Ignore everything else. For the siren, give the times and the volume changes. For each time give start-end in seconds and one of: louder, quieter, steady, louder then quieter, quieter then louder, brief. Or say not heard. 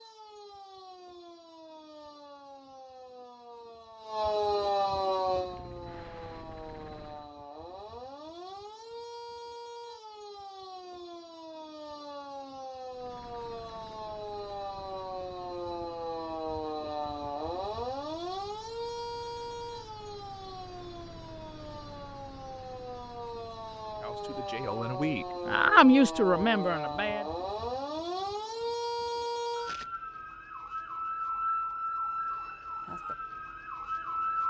0.0-34.4 quieter then louder.